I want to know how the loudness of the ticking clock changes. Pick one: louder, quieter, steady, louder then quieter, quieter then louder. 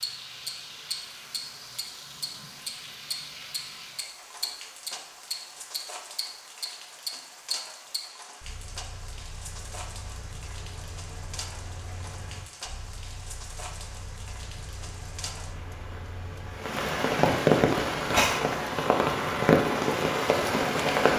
quieter.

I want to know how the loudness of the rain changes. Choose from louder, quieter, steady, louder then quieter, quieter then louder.
louder.